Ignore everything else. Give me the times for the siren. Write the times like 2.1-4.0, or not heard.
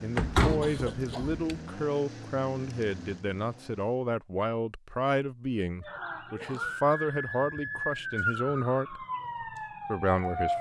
5.8-10.5.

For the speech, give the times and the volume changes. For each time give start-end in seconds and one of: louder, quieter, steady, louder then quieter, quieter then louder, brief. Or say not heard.
0.0-9.1 steady
9.8-10.5 brief.